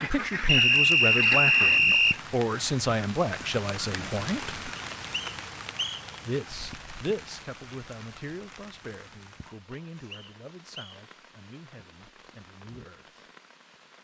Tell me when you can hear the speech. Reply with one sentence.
The speech can be heard from 0.0 to 4.6 s and from 6.2 to 13.2 s.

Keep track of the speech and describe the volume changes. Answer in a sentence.
The volume of the speech goes down.